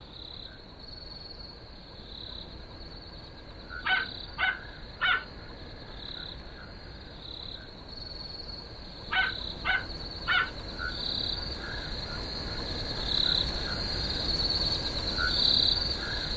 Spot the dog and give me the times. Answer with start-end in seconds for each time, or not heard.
3.9-5.2, 9.1-10.5.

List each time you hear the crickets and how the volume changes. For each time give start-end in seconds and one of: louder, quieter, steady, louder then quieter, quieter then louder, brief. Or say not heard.
0.0-16.3 louder.